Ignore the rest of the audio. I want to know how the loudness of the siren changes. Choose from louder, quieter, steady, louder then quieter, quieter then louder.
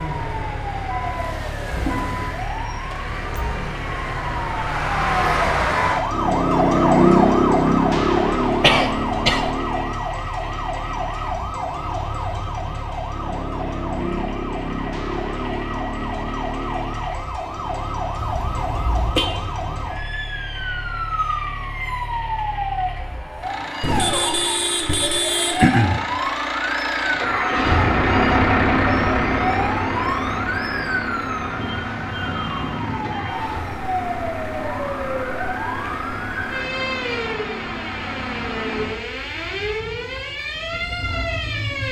quieter.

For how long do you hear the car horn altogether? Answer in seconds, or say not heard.
3 s.